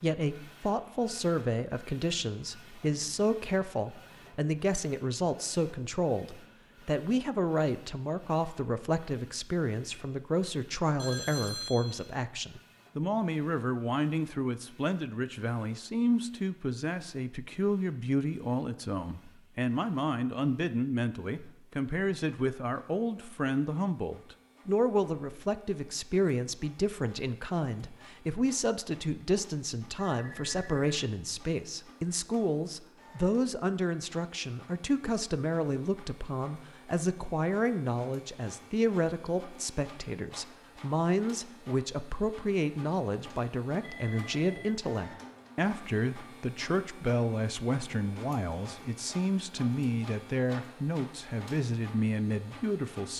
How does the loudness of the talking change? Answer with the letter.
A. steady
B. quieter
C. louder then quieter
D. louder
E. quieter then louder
A.